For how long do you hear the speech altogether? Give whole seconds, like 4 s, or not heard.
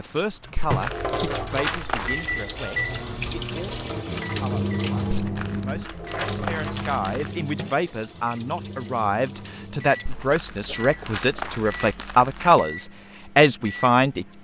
14 s.